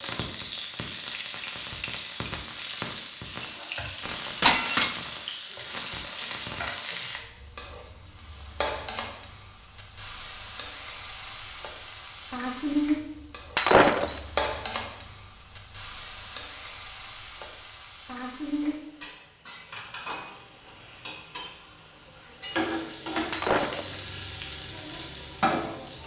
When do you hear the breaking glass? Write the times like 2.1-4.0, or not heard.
4.4-5.0, 13.6-14.2, 23.3-24.1.